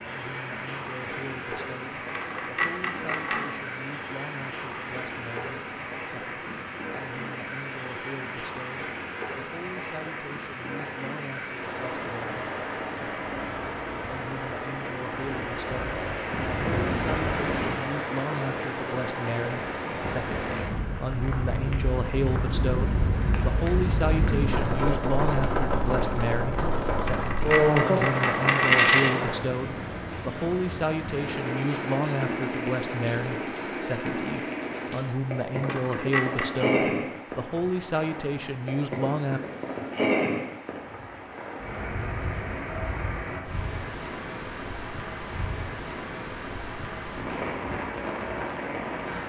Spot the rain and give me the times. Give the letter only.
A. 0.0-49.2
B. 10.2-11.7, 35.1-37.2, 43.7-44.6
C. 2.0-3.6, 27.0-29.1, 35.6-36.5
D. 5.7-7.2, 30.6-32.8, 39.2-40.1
A.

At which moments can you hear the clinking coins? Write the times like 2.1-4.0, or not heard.
2.0-3.6, 27.0-29.1, 35.6-36.5.